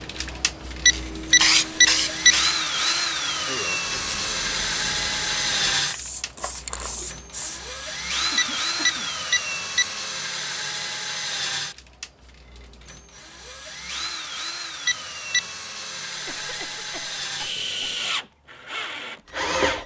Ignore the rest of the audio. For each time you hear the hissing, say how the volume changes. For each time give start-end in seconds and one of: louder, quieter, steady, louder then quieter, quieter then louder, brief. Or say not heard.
0.1-7.7 quieter then louder.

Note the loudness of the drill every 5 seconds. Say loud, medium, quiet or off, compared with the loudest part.
loud, loud, medium, loud.